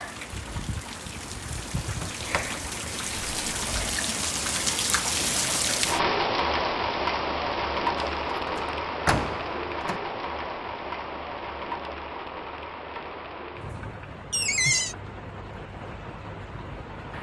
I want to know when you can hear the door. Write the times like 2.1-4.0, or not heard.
1.9-4.0, 8.0-10.0, 14.3-14.9.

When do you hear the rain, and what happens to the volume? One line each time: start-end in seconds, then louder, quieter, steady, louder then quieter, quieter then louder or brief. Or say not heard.
0.0-17.1 louder then quieter.